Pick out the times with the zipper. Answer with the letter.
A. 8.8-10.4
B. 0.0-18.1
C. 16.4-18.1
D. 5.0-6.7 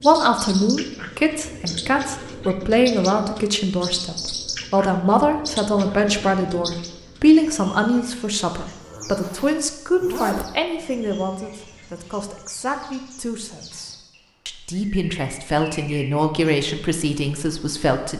A.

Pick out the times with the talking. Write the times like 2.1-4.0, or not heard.
0.0-18.1.